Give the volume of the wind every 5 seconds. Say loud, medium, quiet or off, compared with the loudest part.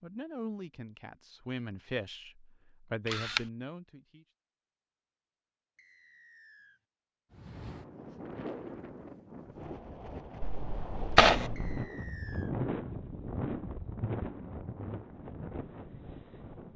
off, medium, loud, medium.